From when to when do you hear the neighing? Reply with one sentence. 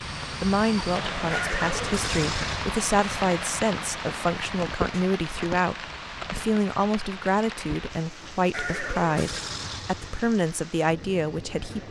The neighing can be heard from 1.3 to 2.8 s and from 8.5 to 10.3 s.